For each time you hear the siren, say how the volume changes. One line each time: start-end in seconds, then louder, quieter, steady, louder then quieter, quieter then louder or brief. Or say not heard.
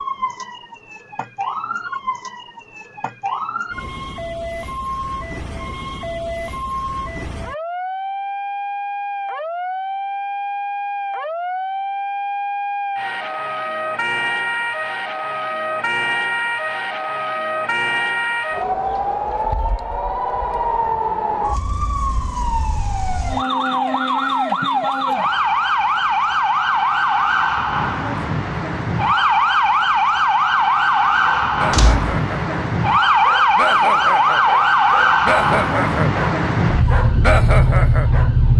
0.0-38.5 louder.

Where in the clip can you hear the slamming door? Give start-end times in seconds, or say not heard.
31.7-32.1.